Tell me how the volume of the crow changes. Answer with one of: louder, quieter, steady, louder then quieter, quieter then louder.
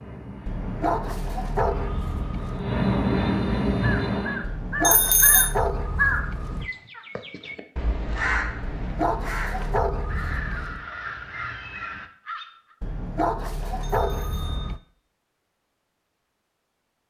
quieter.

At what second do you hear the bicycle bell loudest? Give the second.
5 s.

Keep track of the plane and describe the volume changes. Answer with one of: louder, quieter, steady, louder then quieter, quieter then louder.
louder.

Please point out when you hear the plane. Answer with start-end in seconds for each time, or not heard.
0.0-4.5.